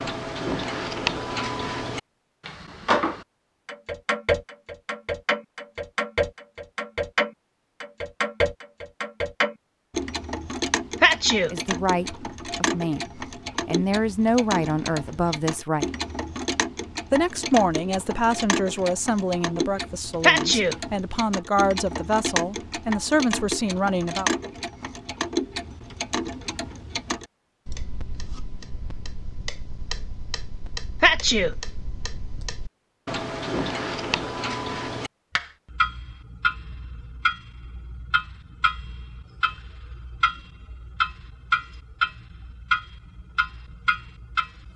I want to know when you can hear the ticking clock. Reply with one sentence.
You can hear the ticking clock from 0.0 to 44.7 s.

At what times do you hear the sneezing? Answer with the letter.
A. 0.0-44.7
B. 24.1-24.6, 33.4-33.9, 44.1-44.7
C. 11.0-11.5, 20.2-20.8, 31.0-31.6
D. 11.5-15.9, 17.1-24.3
C.